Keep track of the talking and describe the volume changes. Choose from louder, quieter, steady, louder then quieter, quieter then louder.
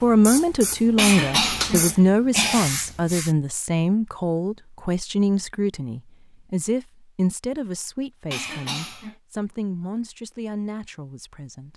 quieter.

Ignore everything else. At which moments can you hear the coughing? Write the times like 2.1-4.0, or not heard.
0.9-2.7, 8.3-9.2.